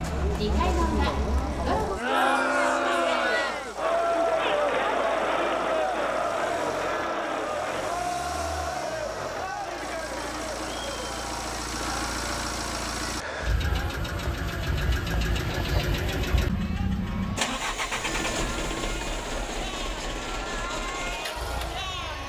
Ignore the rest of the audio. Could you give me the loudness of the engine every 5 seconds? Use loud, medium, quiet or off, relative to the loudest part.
quiet, medium, loud, loud, medium.